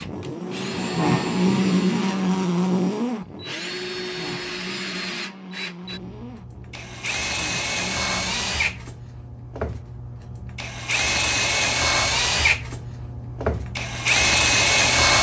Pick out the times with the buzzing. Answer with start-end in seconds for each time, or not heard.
0.0-8.9.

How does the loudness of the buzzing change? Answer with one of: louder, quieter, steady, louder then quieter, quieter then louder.
quieter.